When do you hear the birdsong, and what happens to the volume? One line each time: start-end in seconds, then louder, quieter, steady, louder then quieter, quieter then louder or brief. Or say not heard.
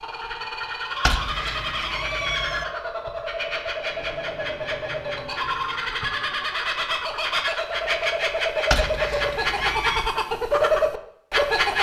0.0-11.7 louder.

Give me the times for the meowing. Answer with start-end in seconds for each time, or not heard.
1.0-2.6, 8.7-10.1.